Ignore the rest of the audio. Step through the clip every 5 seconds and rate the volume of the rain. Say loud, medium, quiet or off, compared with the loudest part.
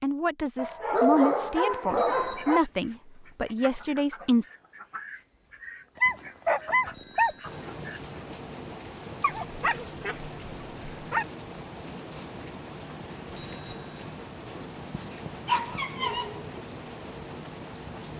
off, loud, loud, loud.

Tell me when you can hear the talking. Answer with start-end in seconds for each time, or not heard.
0.0-4.5.